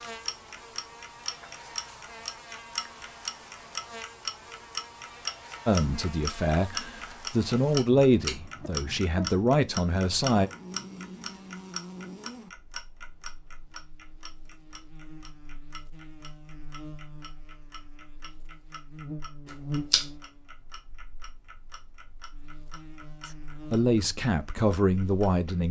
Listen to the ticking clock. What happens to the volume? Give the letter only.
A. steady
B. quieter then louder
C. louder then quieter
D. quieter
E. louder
D.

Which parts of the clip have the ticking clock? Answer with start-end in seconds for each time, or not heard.
0.0-25.6.